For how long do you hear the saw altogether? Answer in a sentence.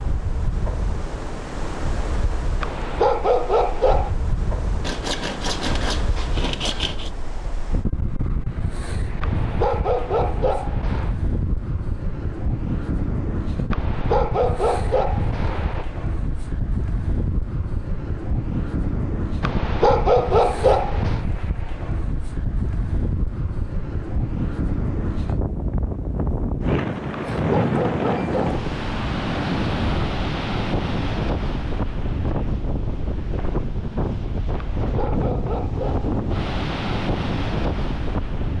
You can hear the saw for 2 seconds altogether.